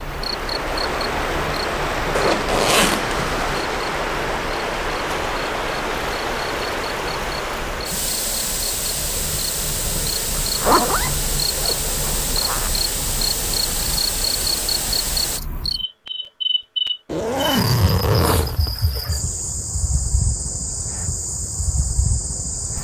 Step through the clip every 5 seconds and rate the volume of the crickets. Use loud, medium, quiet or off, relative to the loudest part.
medium, medium, loud, loud, loud.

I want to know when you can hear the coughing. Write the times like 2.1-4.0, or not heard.
not heard.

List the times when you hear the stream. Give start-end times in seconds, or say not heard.
0.0-15.4.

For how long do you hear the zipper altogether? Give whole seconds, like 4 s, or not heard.
6 s.